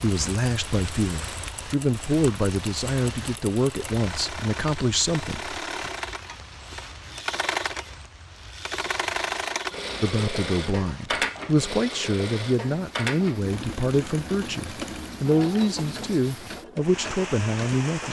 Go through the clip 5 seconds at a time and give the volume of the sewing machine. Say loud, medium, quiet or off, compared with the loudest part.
medium, loud, loud, medium.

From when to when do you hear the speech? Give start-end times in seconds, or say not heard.
0.0-5.9, 10.0-18.0.